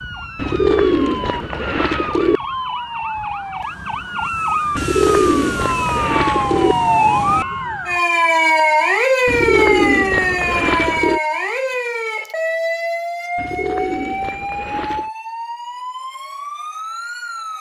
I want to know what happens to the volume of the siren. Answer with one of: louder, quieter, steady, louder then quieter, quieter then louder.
louder then quieter.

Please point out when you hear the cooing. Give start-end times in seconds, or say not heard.
0.3-2.4, 4.8-6.8, 9.2-11.2, 13.3-15.1.